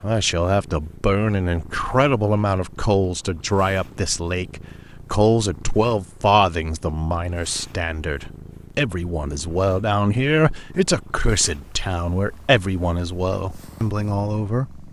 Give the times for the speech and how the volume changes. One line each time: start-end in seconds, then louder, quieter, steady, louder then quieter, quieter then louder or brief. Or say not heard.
0.0-14.8 steady.